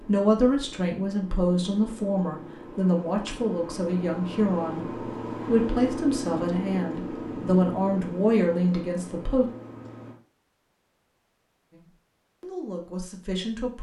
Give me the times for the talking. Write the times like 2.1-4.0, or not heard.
0.1-4.8, 5.5-9.4, 11.7-13.7.